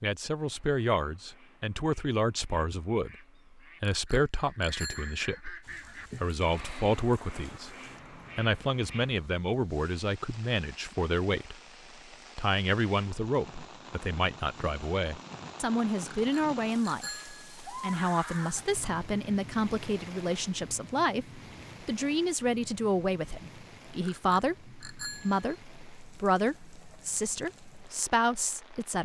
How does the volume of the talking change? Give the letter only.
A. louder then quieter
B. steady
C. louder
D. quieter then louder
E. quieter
B.